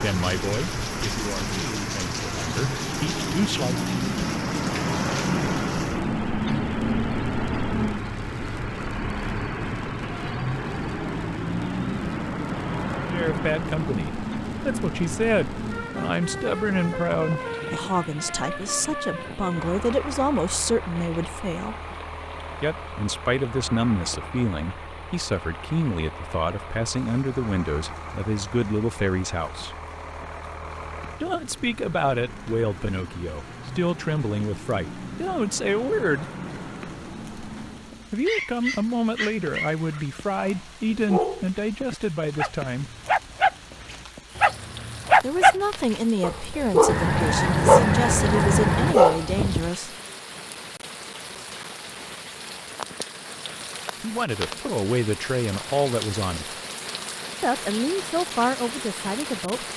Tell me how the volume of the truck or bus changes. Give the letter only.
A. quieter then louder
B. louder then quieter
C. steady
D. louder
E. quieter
E.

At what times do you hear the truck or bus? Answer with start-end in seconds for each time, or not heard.
0.0-38.1.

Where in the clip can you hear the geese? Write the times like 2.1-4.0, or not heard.
46.9-49.0.